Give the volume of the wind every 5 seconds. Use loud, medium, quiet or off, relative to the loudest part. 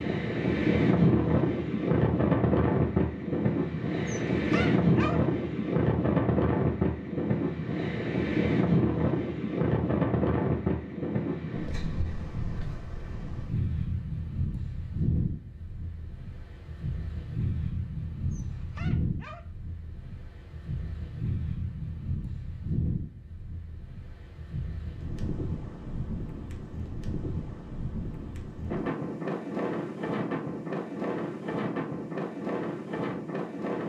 loud, loud, medium, medium, quiet, medium, medium.